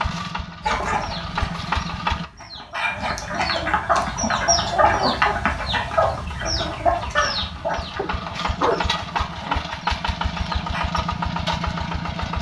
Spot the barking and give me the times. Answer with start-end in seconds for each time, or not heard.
8.0-9.3.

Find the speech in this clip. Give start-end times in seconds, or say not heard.
not heard.